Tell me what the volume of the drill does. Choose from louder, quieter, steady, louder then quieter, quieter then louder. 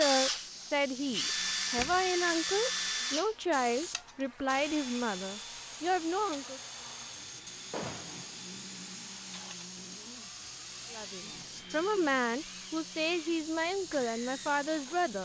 quieter.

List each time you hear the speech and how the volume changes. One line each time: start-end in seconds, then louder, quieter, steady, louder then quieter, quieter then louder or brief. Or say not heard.
0.0-6.6 steady
10.9-15.2 steady.